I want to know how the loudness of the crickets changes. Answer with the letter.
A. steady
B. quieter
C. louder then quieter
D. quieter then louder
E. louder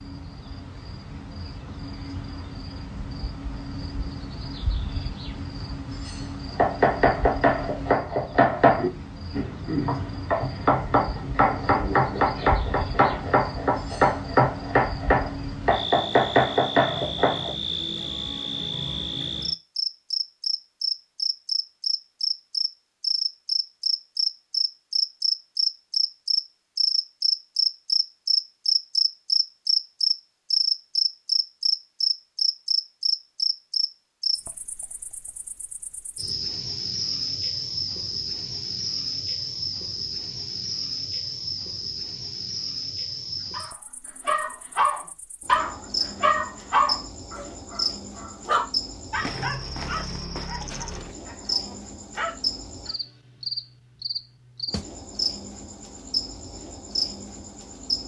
C.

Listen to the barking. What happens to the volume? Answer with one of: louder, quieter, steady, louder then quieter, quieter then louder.
quieter.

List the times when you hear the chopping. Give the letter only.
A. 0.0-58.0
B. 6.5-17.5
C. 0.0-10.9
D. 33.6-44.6
B.